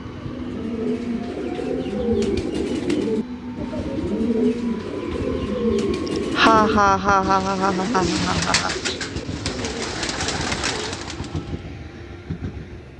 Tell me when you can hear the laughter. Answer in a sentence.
You can hear the laughter from 6.0 to 8.8 s.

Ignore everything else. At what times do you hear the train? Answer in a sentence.
The train can be heard from 0.0 to 12.9 s.